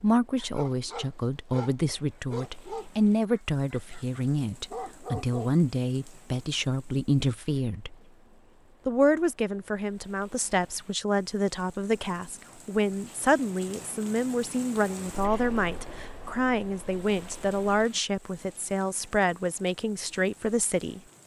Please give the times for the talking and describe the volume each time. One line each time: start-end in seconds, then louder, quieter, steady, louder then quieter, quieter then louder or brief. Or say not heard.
0.0-8.0 steady
8.8-21.0 steady.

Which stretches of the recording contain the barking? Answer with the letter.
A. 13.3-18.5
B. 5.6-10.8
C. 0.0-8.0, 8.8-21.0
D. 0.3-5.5
D.